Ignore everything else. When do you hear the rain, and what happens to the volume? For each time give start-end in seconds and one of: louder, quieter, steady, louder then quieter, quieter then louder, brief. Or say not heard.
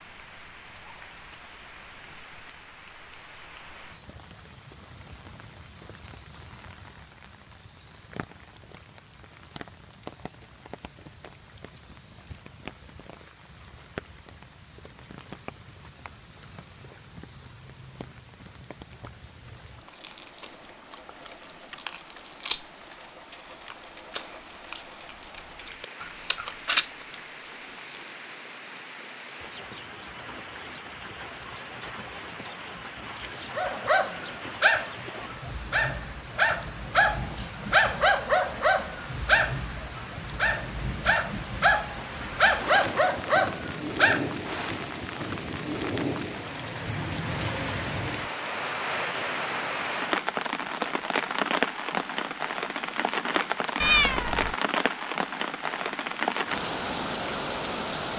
0.0-58.1 louder.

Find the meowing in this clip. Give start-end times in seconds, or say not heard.
53.8-54.5.